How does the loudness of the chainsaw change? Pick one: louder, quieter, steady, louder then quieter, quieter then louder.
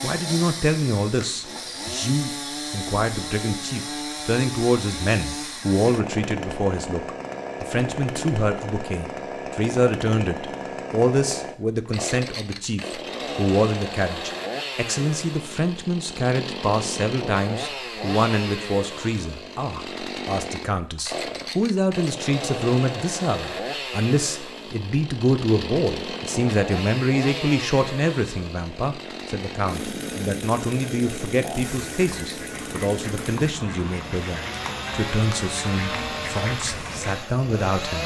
steady.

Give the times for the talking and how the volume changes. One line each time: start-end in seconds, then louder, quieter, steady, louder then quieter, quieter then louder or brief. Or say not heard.
0.0-38.0 steady.